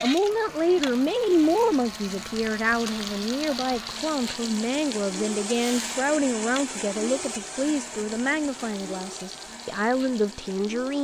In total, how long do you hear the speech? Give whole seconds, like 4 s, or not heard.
11 s.